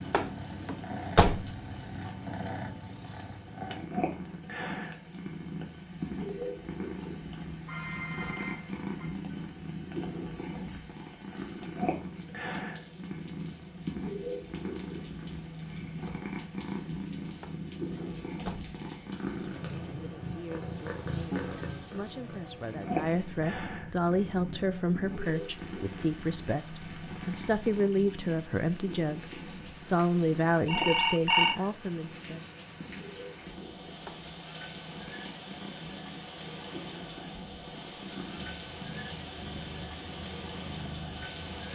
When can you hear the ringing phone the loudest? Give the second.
31 s.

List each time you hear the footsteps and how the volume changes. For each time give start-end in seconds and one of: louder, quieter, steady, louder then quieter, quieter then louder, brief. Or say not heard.
not heard.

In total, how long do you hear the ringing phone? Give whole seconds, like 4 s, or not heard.
3 s.